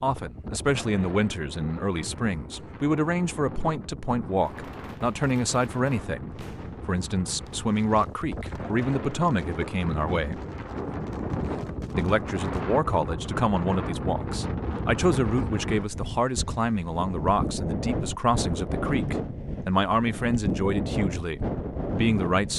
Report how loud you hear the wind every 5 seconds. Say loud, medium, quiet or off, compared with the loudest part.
medium, medium, loud, loud, loud.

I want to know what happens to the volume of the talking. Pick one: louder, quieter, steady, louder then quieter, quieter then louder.
steady.